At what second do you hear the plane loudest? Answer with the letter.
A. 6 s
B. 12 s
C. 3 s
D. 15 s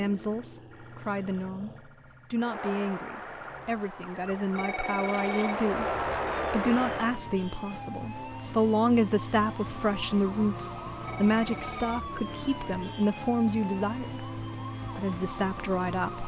A.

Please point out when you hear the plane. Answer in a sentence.
The plane can be heard from 2.4 to 7.2 s.